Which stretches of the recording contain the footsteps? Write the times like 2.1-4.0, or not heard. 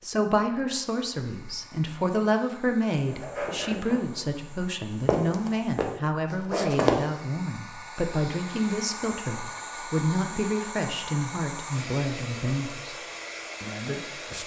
3.0-7.0.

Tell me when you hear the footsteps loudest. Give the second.
7 s.